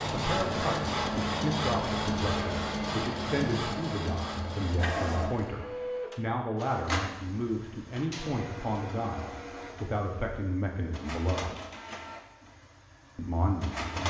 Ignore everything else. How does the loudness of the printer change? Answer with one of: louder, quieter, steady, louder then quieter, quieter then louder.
quieter.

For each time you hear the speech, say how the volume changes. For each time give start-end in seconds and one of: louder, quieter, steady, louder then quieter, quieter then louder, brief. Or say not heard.
0.0-11.6 steady
13.2-14.0 brief.